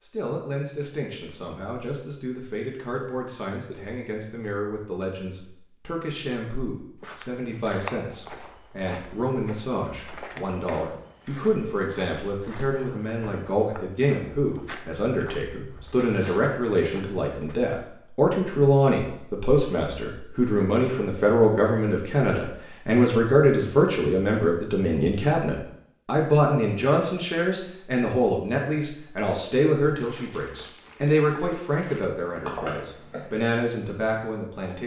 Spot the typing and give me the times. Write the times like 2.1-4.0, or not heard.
32.2-34.8.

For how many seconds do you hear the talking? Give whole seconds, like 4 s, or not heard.
35 s.